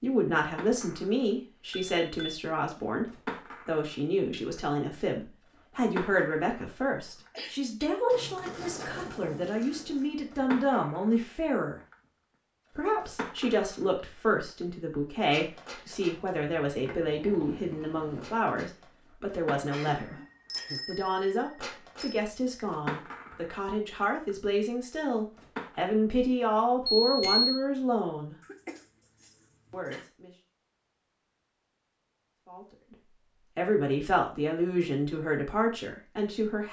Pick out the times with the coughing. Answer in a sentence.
You can hear the coughing from 7.3 to 8.0 s, from 19.6 to 20.8 s and from 28.4 to 30.1 s.